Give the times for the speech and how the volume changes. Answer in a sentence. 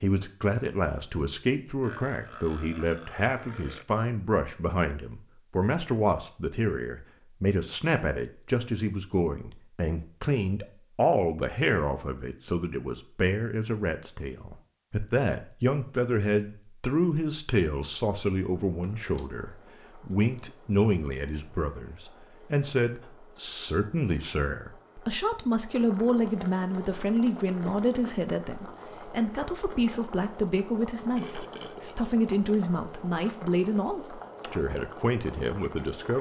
The speech can be heard from 0.0 to 36.1 s, at a steady volume.